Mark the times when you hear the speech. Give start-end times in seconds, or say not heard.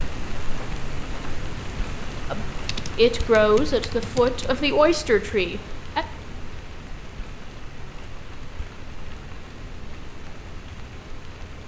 2.3-6.0.